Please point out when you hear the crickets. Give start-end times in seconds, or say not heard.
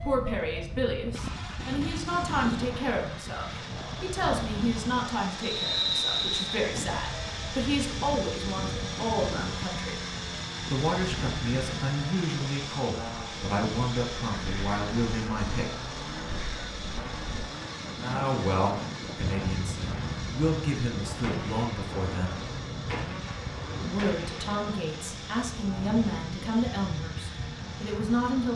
not heard.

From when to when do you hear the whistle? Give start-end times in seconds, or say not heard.
5.4-6.7.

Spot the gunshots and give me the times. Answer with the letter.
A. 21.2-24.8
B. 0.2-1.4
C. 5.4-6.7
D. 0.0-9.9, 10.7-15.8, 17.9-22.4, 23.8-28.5
A.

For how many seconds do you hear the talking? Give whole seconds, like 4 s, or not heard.
24 s.